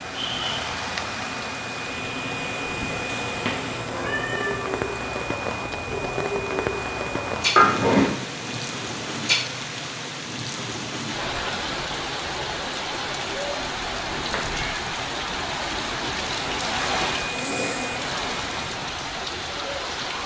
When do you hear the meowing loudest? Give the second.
8 s.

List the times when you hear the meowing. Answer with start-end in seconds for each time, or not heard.
3.4-4.7, 7.5-8.2, 14.1-14.8.